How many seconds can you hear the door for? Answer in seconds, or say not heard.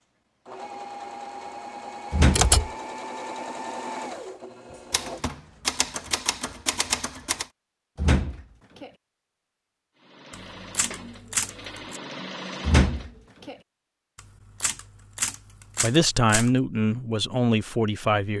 2 s.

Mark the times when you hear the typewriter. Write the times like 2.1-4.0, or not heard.
2.3-2.7, 4.9-7.5, 10.3-12.0, 14.2-16.5.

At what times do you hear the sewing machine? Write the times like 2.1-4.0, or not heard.
0.5-5.6, 9.9-13.3.